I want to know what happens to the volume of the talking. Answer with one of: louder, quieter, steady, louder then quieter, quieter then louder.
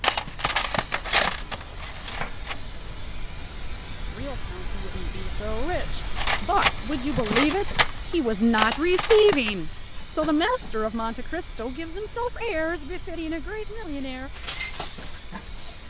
louder then quieter.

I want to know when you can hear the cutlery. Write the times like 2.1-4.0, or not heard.
0.0-2.6, 6.2-9.5, 14.3-15.8.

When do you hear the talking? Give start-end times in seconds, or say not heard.
4.1-14.3.